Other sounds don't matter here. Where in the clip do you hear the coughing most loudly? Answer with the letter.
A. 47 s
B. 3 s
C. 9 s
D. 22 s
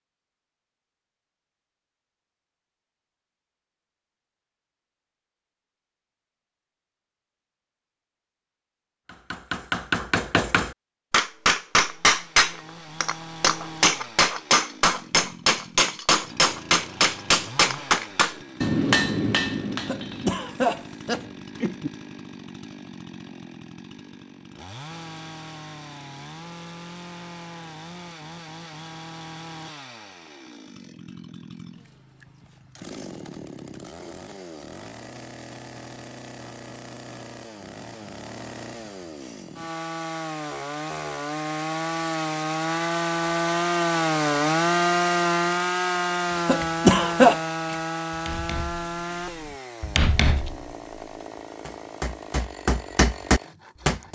A.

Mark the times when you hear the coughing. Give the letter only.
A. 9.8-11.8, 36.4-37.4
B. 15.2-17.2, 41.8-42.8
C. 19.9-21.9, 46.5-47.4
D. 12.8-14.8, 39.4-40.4
C.